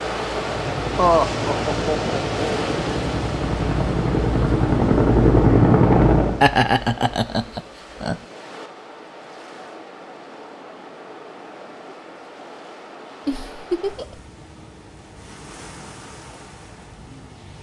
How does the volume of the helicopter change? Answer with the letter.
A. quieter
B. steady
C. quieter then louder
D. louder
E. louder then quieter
D.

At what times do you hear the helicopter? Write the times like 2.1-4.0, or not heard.
0.0-6.4.